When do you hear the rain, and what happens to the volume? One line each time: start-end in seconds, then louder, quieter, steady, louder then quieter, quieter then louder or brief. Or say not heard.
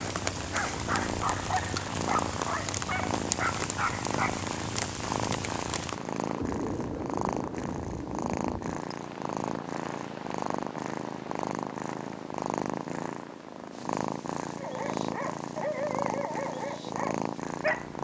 0.0-18.0 quieter.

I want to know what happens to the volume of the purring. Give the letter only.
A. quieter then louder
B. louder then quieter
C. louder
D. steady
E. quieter
D.